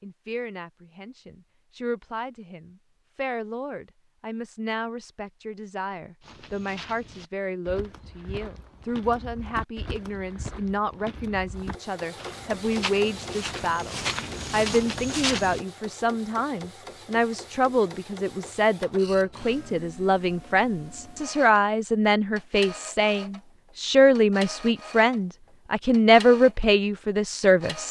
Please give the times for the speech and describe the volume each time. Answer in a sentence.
The speech can be heard from 0.0 to 27.8 s, getting louder.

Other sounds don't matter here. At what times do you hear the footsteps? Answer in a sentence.
You can hear the footsteps from 6.2 to 15.6 s.